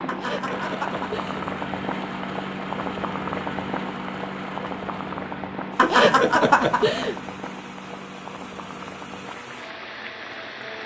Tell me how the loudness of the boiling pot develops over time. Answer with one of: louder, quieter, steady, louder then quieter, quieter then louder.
quieter.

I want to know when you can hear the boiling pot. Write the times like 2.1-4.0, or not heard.
0.0-10.8.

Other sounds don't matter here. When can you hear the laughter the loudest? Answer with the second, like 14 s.
6 s.